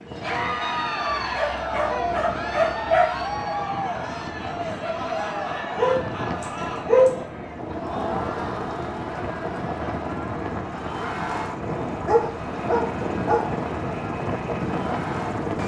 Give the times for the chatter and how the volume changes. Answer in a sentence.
The chatter can be heard from 0.1 to 15.5 s, getting quieter.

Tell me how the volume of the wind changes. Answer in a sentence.
The volume of the wind goes up.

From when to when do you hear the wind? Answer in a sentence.
The wind can be heard from 0.0 to 15.6 s.